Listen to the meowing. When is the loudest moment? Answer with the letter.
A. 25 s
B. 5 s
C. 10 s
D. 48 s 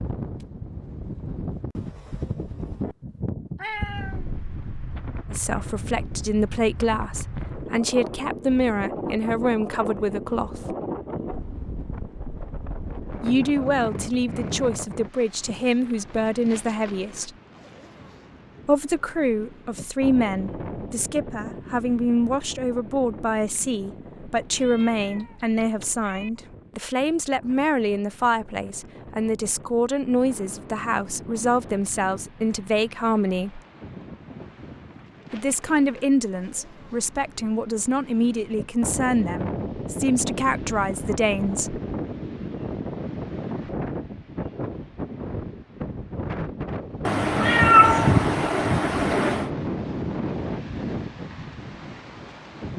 D.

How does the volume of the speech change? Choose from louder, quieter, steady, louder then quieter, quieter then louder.
steady.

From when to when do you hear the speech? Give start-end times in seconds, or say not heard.
5.3-10.8, 13.2-17.3, 18.6-33.6, 35.3-41.8.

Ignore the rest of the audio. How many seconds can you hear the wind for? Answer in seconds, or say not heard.
53 s.